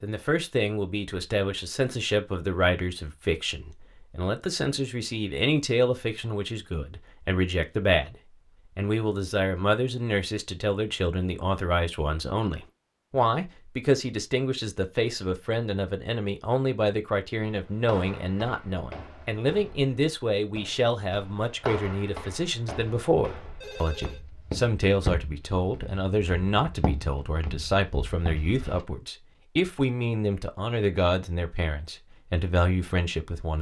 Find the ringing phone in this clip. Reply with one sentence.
The ringing phone can be heard from 23.6 to 24.2 s.